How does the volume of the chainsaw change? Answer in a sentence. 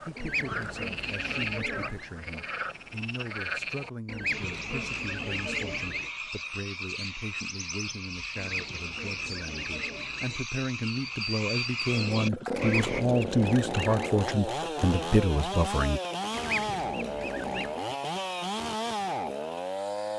The loudness of the chainsaw stays about the same.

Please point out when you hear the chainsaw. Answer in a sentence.
You can hear the chainsaw from 11.8 to 20.1 s.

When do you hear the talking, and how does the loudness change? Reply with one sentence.
The talking can be heard from 0.0 to 16.0 s, getting louder.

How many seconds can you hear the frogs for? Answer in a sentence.
The frogs can be heard for 13 seconds in total.